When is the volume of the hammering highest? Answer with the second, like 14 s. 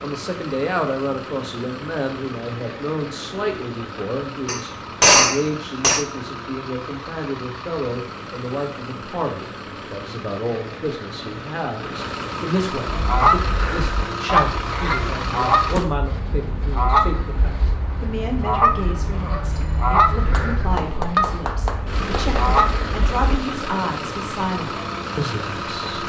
5 s.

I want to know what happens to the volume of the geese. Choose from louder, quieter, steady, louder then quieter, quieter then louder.
steady.